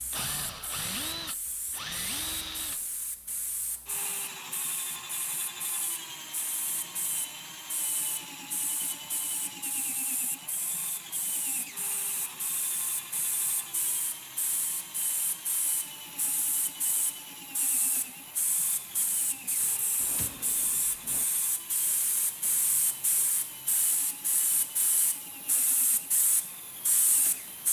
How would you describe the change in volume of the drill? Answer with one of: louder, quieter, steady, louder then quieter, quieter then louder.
quieter.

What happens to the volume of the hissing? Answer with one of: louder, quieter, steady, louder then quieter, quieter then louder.
louder.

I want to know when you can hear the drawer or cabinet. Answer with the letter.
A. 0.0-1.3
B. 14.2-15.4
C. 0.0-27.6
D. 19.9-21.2
D.